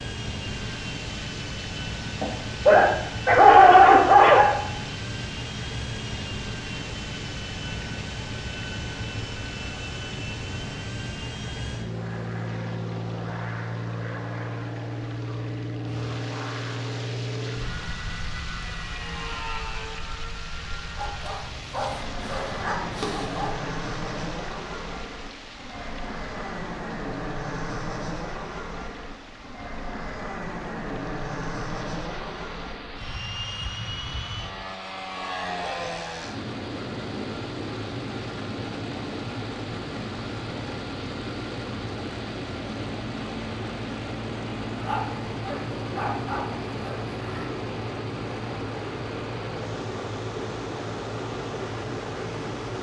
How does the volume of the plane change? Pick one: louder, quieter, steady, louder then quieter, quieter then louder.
steady.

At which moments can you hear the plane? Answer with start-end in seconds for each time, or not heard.
0.0-52.7.